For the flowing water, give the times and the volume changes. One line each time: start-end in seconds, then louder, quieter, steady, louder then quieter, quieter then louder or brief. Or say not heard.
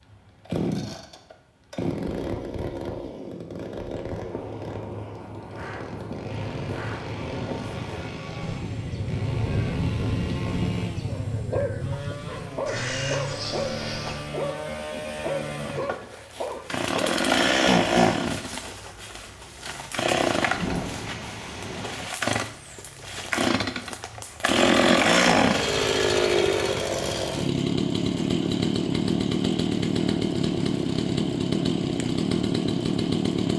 not heard.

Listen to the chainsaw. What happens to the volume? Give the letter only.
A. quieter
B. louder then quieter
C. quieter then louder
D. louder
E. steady
D.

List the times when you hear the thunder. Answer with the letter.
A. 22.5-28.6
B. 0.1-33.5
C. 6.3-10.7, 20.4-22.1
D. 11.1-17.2
C.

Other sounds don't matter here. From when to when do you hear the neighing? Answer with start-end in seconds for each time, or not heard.
not heard.